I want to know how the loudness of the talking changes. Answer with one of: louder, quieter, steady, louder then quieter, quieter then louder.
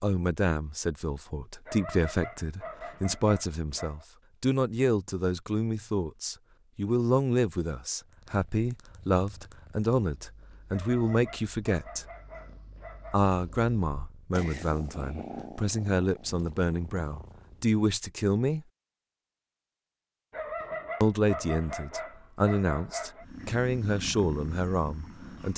steady.